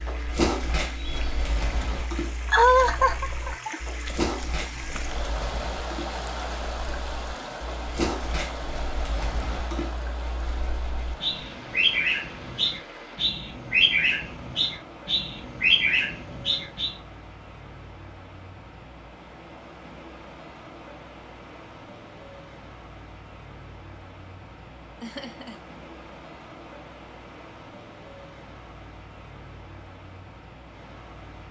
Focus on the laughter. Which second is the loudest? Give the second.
3 s.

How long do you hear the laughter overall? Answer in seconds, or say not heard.
2 s.